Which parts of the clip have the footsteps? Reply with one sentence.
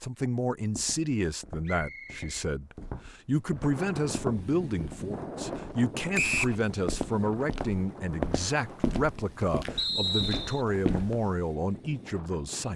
You can hear the footsteps from 0.6 to 11.4 s.